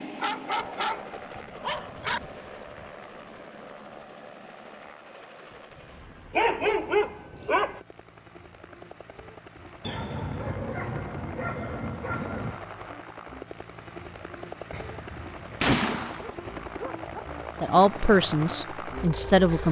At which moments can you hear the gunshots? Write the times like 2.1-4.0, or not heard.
14.7-16.3.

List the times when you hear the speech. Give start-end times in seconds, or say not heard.
17.6-19.6.